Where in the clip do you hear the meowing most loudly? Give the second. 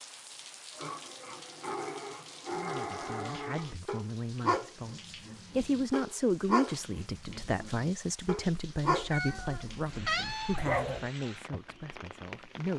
10 s.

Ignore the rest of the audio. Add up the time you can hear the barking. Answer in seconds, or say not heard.
10 s.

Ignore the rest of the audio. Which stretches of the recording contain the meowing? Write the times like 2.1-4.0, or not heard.
9.0-10.7.